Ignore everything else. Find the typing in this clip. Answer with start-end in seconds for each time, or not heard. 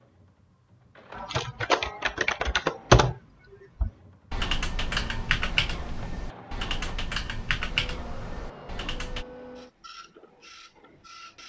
1.1-3.2, 3.8-9.2.